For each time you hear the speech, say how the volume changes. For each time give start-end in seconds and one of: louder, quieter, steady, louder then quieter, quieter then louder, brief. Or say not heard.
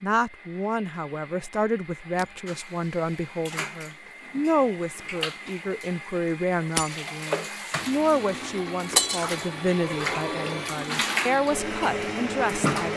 0.0-12.9 steady.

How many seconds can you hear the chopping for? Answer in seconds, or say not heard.
not heard.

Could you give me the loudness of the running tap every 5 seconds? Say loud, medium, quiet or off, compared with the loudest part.
quiet, medium, loud.